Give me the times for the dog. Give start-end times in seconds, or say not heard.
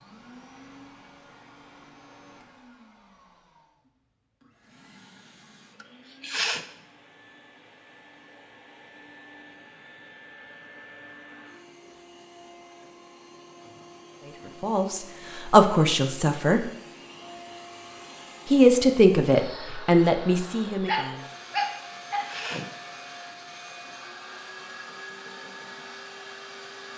20.9-22.4.